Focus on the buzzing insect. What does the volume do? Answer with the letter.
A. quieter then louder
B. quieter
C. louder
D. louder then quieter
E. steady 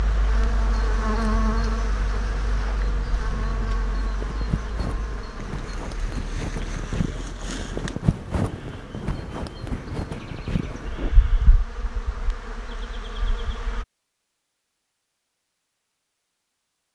A.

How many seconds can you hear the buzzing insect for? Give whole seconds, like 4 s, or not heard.
14 s.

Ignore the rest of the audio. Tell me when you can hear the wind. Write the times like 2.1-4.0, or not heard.
0.0-11.2.